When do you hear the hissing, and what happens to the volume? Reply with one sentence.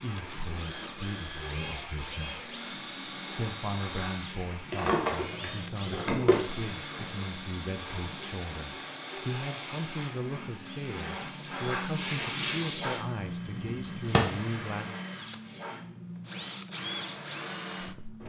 The hissing can be heard from 0.0 to 18.2 s, getting louder then quieter.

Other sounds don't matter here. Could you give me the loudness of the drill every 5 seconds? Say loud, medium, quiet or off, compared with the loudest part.
loud, loud, medium, loud.